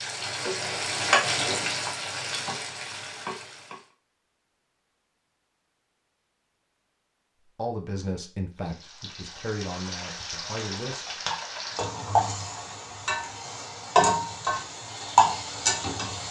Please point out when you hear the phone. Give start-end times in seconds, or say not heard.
not heard.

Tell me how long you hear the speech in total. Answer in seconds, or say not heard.
4 s.